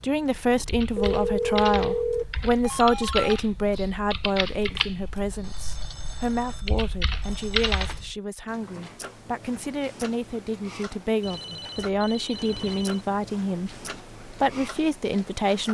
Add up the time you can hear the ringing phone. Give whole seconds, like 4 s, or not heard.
7 s.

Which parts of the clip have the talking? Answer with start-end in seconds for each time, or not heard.
0.0-15.7.